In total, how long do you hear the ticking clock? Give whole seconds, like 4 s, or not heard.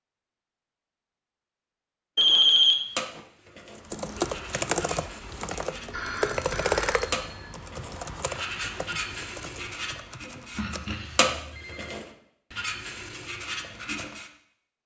not heard.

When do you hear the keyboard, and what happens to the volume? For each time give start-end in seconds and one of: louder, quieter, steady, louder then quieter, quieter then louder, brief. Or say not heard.
3.8-10.8 quieter.